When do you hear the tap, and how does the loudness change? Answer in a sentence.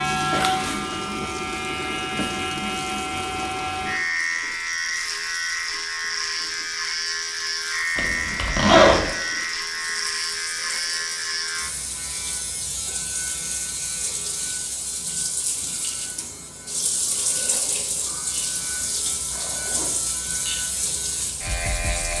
The tap can be heard from 0.0 to 22.1 s, getting louder.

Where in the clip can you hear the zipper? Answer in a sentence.
The zipper can be heard from 8.0 to 9.1 s and from 19.3 to 19.9 s.